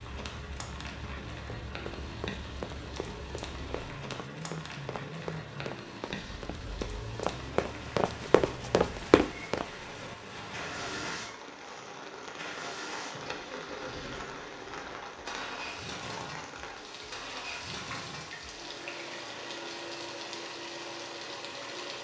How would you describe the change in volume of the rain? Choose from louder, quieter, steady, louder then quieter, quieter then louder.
steady.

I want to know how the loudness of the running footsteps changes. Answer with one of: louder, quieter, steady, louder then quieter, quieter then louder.
louder.